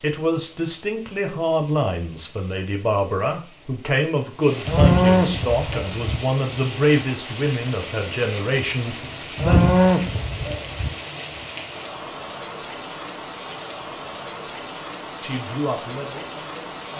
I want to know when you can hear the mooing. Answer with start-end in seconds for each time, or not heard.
4.7-6.2, 9.3-10.9.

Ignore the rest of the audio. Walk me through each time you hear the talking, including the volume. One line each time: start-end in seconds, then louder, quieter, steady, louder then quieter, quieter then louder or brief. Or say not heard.
0.0-9.7 steady
15.2-16.9 brief.